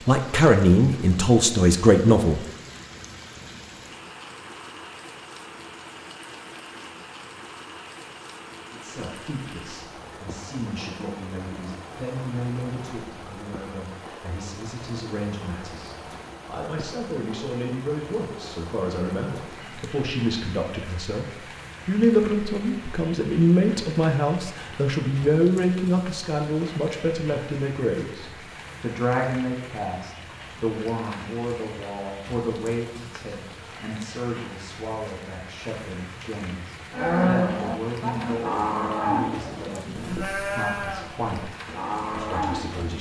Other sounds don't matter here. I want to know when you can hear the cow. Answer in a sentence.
You can hear the cow from 36.9 to 42.9 s.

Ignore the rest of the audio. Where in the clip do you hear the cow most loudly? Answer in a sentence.
The loudest moment of the cow is at 37 seconds.